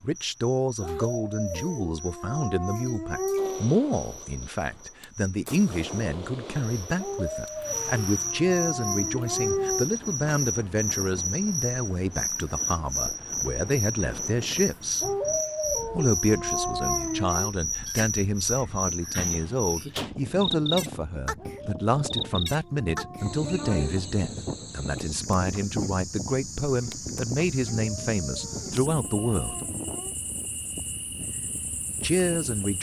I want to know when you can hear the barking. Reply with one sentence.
The barking can be heard from 0.8 to 3.6 s, from 7.0 to 9.8 s, from 15.0 to 17.5 s, from 21.4 to 23.9 s and from 27.6 to 30.1 s.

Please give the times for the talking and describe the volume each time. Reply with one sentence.
The talking can be heard from 0.0 to 15.1 s, at a steady volume; from 15.9 to 29.6 s, at a steady volume; and briefly from 32.0 to 32.7 s.